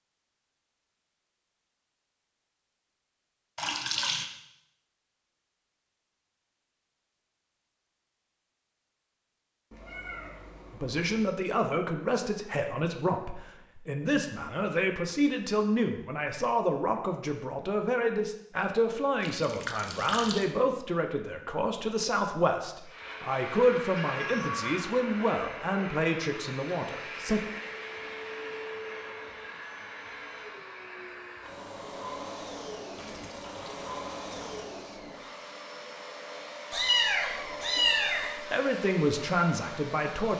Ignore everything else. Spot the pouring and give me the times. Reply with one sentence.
You can hear the pouring from 3.5 to 4.2 s, from 19.2 to 20.4 s and from 33.0 to 34.7 s.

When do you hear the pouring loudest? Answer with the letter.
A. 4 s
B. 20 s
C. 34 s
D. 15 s
A.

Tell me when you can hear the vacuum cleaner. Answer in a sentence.
You can hear the vacuum cleaner from 22.8 to 40.3 s.